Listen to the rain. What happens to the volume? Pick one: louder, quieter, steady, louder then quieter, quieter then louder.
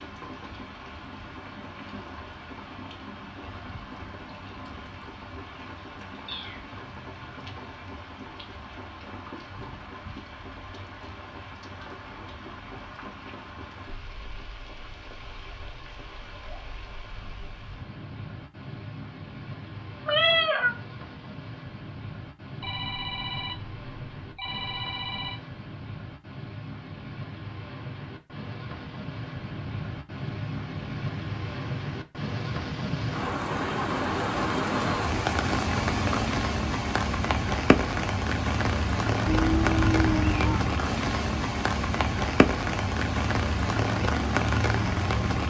louder.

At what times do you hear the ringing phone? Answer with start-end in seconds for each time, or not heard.
22.6-25.4.